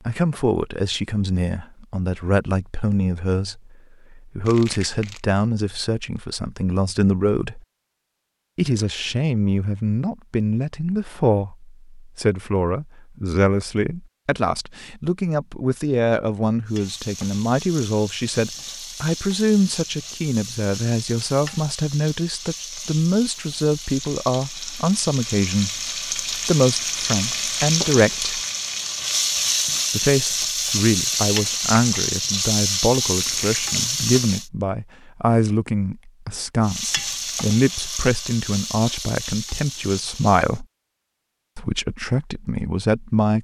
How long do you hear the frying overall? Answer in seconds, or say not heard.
22 s.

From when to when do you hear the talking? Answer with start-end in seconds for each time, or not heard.
0.1-7.6, 8.6-28.4, 29.9-40.6, 41.5-43.3.